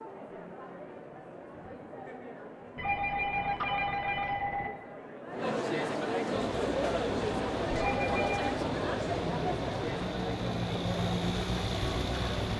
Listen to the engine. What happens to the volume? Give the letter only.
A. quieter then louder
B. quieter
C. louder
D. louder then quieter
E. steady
C.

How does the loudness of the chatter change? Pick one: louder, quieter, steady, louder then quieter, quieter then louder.
louder then quieter.